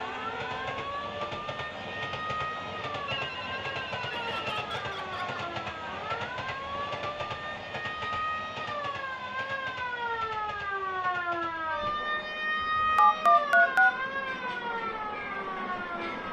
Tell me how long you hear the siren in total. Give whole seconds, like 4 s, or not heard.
16 s.